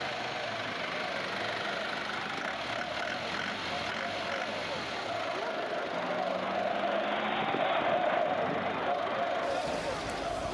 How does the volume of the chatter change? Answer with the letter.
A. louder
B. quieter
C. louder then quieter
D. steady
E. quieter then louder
A.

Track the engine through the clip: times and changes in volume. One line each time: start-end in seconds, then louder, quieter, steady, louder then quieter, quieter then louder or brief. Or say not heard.
0.0-10.5 quieter.